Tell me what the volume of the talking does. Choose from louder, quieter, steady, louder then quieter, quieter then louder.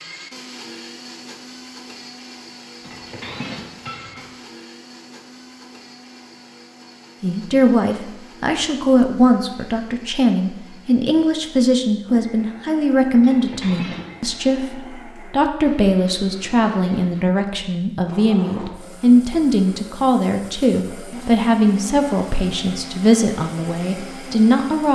steady.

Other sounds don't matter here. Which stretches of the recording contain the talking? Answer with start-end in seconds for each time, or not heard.
7.2-24.8.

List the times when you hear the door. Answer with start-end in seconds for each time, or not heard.
not heard.